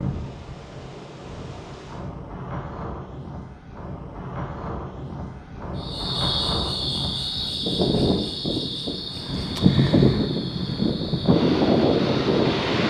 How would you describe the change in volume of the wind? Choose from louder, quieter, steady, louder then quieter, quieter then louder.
louder.